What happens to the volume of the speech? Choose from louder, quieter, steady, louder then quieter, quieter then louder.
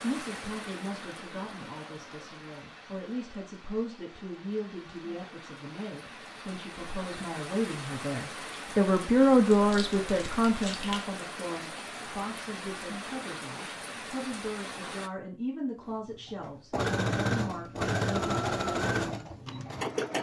louder then quieter.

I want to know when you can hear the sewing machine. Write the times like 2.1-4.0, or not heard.
15.8-20.1.